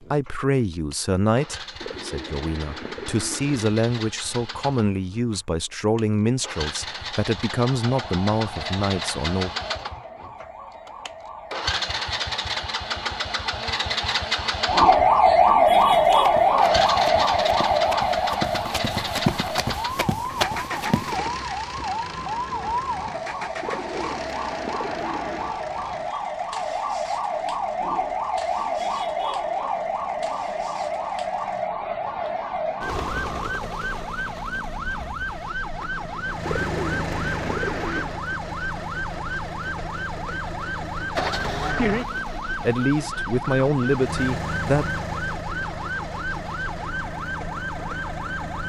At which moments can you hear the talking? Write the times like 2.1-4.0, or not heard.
0.0-9.5, 42.6-44.9.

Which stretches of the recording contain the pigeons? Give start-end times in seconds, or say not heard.
1.8-3.7, 23.6-25.5, 36.5-38.2.